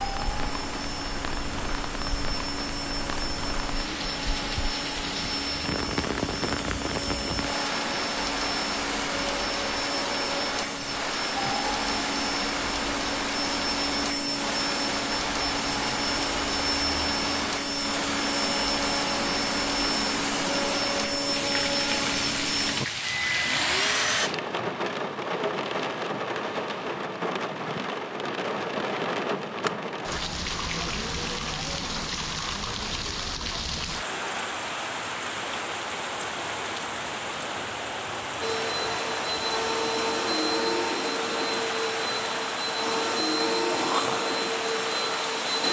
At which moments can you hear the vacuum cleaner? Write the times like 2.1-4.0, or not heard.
0.0-24.3, 38.4-45.6.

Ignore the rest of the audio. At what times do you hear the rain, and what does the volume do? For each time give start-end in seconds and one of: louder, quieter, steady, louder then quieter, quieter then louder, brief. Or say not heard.
0.0-45.6 steady.